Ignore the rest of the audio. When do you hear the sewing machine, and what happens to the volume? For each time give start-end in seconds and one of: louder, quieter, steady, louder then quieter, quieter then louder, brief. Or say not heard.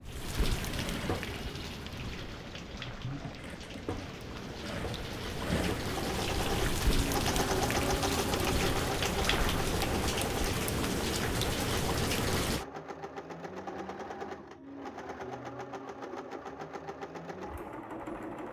0.0-18.4 louder then quieter.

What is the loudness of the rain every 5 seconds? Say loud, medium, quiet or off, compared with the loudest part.
medium, loud, loud, off.